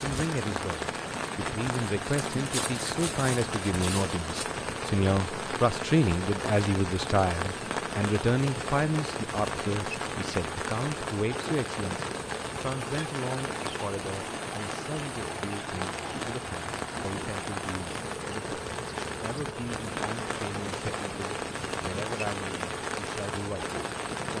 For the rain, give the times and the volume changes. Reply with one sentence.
The rain can be heard from 0.0 to 24.3 s, at a steady volume.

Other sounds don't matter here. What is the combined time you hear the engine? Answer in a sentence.
The engine can be heard for 24 seconds in total.